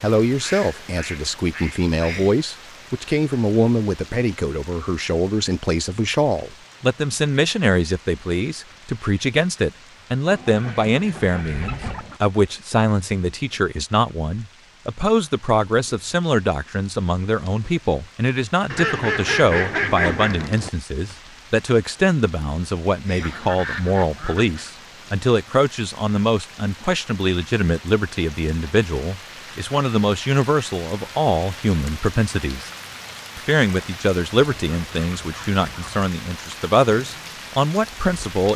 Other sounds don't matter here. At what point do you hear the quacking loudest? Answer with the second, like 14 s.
20 s.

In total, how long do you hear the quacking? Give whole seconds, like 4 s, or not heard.
9 s.